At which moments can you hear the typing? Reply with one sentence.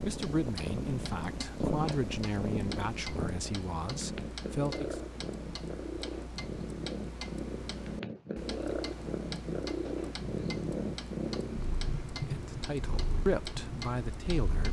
You can't hear the typing here.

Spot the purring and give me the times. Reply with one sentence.
The purring can be heard from 0.0 to 14.6 s.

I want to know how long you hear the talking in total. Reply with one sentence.
The talking can be heard for 7 seconds in total.